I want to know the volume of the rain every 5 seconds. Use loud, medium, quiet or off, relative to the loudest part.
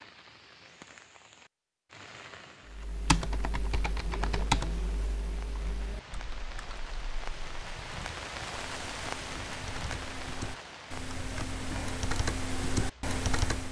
medium, loud, loud.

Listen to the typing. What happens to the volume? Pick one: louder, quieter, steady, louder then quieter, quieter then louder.
quieter then louder.